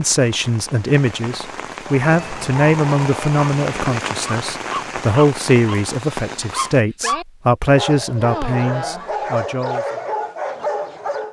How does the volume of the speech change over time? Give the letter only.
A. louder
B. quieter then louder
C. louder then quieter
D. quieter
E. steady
E.